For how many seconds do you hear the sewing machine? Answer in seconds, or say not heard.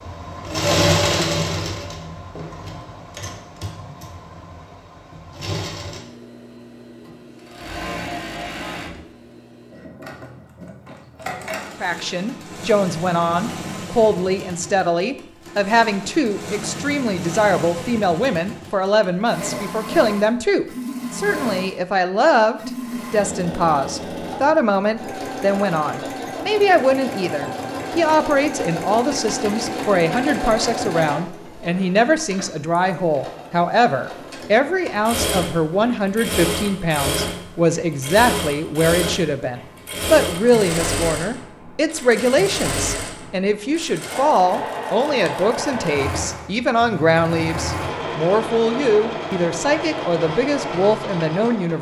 52 s.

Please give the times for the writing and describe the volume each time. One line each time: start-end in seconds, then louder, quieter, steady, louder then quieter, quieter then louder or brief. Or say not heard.
not heard.